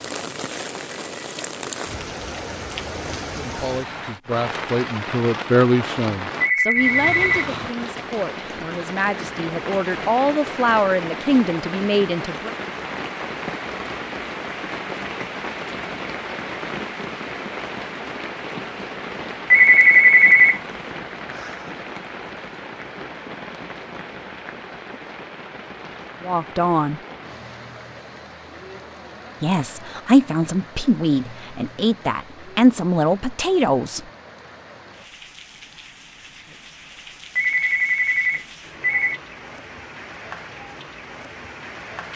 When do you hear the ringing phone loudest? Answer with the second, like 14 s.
20 s.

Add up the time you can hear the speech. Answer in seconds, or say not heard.
15 s.